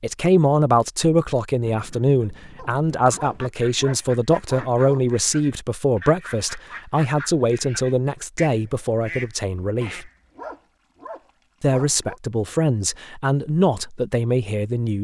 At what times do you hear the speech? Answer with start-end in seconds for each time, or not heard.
0.0-10.1, 11.6-15.0.